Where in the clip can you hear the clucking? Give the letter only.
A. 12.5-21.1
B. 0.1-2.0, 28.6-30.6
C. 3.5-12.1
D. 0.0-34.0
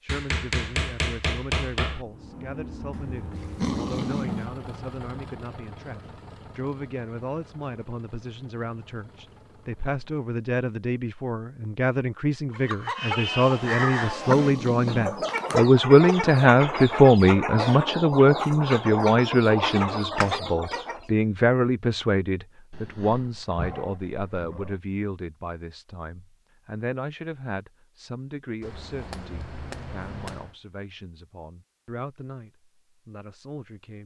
A.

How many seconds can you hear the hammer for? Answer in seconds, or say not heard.
4 s.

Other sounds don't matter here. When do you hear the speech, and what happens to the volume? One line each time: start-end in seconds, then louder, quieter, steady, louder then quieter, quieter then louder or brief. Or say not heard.
0.0-34.0 louder then quieter.